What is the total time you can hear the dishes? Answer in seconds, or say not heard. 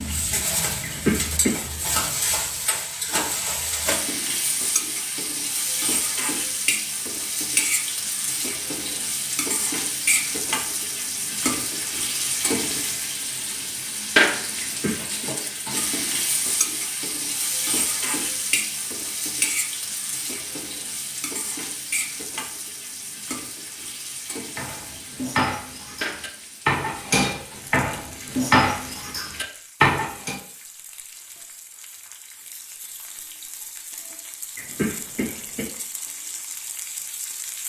6 s.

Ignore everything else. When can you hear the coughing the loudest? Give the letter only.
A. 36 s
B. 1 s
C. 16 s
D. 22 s
B.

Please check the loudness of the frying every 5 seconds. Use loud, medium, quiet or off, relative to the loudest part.
loud, loud, loud, loud, medium, quiet, quiet, medium.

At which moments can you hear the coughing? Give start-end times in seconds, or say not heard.
0.8-1.6, 14.6-15.3, 34.5-35.6.